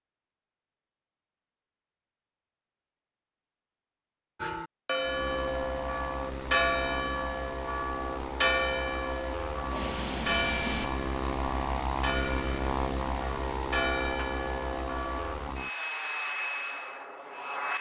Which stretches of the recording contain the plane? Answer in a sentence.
You can hear the plane from 5.0 to 17.7 s.